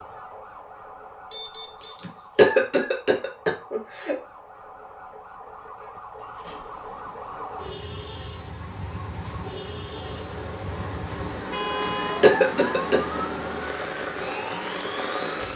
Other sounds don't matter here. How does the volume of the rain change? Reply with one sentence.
The volume of the rain goes up.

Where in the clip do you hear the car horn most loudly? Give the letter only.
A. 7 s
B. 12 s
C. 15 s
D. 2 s
B.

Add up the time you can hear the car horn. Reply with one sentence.
You can hear the car horn for 2 seconds altogether.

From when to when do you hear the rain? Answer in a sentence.
You can hear the rain from 6.5 to 15.5 s.